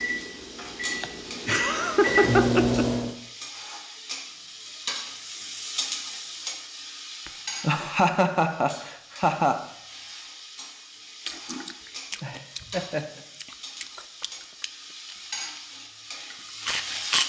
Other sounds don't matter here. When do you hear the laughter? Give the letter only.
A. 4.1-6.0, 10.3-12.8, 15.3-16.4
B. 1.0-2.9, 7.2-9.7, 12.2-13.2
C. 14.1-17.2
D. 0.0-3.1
B.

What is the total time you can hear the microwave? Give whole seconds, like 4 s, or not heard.
3 s.